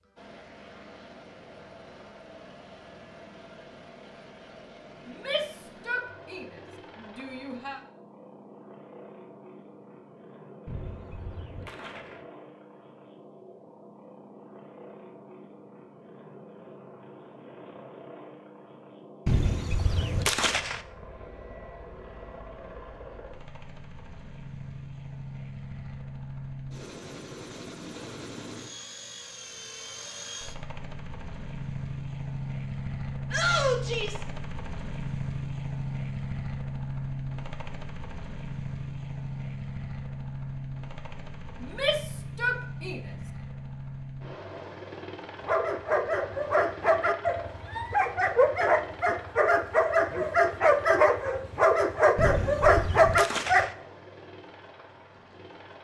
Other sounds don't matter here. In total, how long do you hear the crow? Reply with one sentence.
You can't hear the crow here.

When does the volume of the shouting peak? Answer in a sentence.
The volume of the shouting peaks at 34 seconds.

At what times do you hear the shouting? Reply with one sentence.
You can hear the shouting from 5.0 to 6.5 s, from 7.0 to 7.8 s, from 33.3 to 34.2 s and from 41.6 to 43.0 s.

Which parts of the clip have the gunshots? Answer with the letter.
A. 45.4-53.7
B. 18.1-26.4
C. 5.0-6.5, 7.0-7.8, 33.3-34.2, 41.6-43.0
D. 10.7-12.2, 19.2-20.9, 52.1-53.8
D.